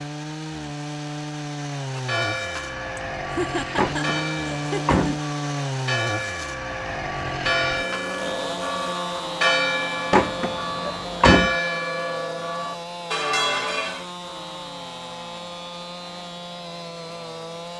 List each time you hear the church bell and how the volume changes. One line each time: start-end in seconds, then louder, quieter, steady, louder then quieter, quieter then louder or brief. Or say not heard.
1.9-14.1 louder.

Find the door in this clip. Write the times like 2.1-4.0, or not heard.
3.8-5.2, 10.1-11.6.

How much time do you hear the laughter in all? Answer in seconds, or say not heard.
2 s.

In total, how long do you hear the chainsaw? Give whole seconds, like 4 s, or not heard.
18 s.